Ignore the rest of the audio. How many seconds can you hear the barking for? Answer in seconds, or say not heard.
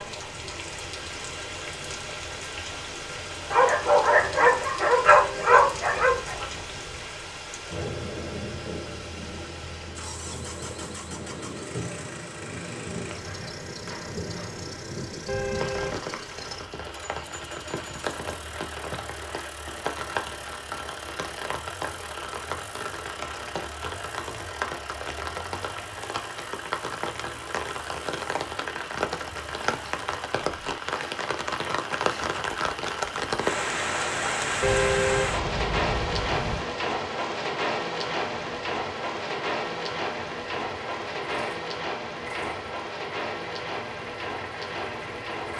3 s.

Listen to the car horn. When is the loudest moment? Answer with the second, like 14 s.
35 s.